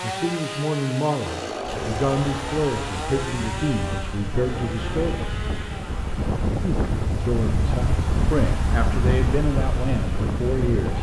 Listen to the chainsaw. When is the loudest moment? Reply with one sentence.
The loudest moment of the chainsaw is at 2 seconds.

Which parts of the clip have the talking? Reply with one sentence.
The talking can be heard from 0.0 to 5.2 s and from 6.6 to 10.9 s.